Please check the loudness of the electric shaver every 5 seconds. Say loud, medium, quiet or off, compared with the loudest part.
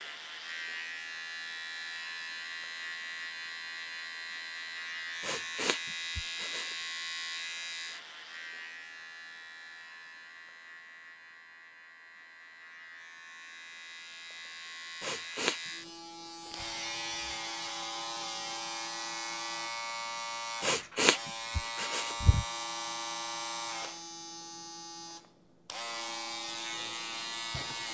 loud, loud, medium, loud, loud, loud.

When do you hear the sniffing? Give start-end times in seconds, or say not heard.
5.2-6.8, 15.0-15.6, 20.6-22.4.